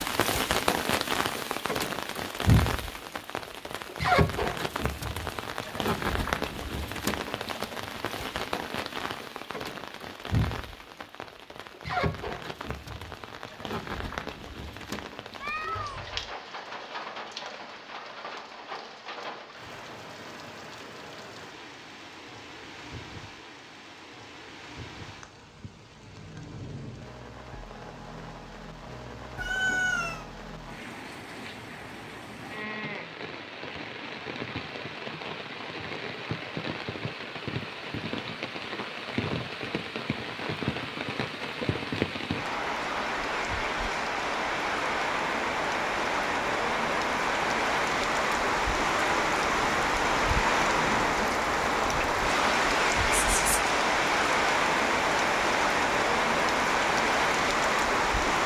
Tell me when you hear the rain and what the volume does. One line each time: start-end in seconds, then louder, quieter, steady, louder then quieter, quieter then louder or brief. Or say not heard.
0.0-58.4 quieter then louder.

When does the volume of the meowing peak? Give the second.
30 s.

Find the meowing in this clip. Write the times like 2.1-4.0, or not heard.
15.4-16.3, 29.4-30.2, 53.1-53.7.